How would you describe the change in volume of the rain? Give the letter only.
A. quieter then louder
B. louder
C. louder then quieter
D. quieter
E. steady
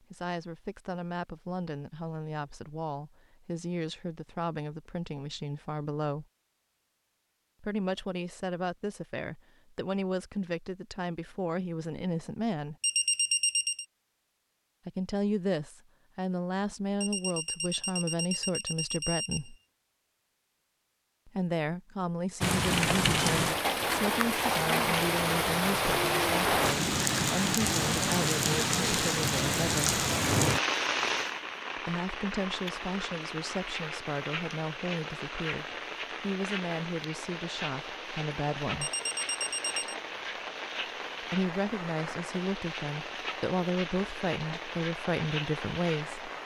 D.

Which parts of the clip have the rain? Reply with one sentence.
The rain can be heard from 22.4 to 46.4 s.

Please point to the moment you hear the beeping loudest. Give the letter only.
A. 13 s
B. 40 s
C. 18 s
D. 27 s
A.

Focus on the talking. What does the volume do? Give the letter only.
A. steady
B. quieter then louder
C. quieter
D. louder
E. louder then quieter
A.